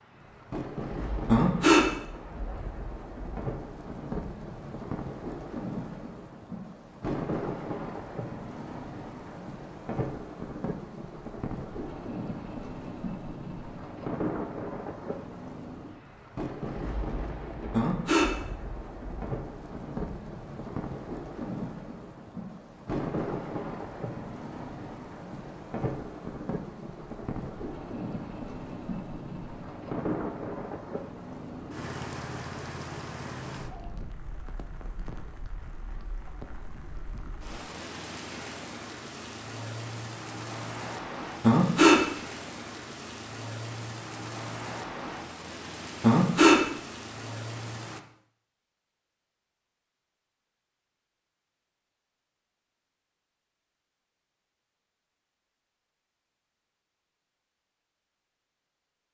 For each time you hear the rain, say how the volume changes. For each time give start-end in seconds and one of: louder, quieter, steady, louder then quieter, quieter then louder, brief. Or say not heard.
0.0-48.0 steady.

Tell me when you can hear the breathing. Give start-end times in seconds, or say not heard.
1.2-1.9, 17.7-18.3, 41.4-42.0, 46.0-46.6.